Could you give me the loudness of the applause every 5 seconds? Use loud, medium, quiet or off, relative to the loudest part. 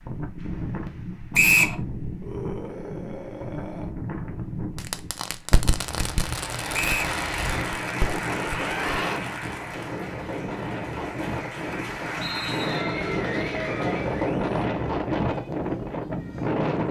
off, loud, loud, off.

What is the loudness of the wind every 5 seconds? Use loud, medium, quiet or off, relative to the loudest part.
medium, medium, loud, loud.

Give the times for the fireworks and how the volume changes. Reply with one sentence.
The fireworks can be heard from 4.8 to 9.7 s, getting quieter.